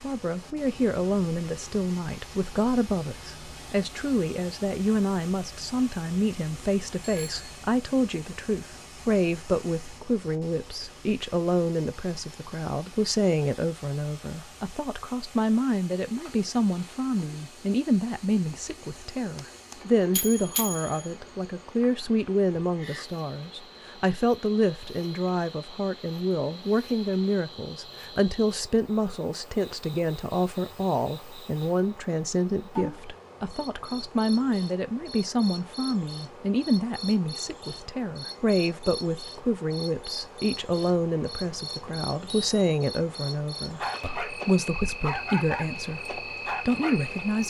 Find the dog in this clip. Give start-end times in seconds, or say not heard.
43.6-47.1.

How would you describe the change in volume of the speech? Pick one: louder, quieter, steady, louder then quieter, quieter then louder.
steady.